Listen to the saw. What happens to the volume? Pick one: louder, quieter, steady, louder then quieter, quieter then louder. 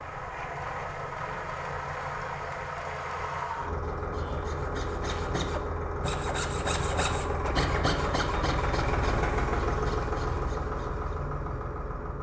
louder then quieter.